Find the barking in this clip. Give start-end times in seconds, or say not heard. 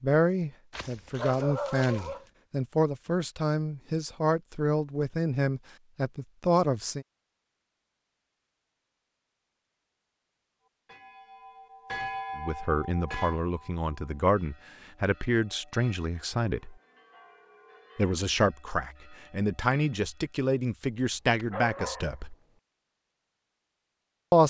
0.7-2.2, 21.4-22.1.